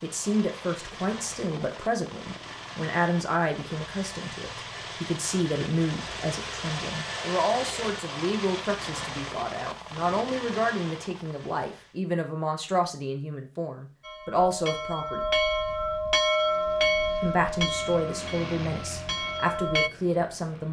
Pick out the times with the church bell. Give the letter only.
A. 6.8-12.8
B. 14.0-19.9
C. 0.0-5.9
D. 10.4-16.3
B.